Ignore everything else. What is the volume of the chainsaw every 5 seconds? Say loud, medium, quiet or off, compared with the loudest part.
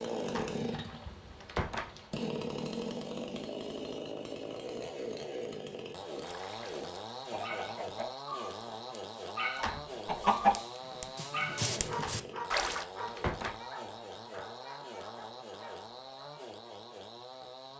loud, loud, medium, medium.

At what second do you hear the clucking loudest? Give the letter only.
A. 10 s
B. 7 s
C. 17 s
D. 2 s
A.